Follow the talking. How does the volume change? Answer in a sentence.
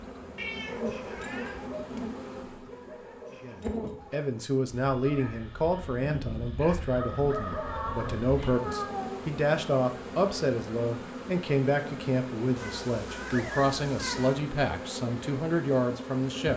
The volume of the talking stays about the same.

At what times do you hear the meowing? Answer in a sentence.
The meowing can be heard from 0.3 to 1.7 s, from 7.5 to 9.3 s and from 12.6 to 14.4 s.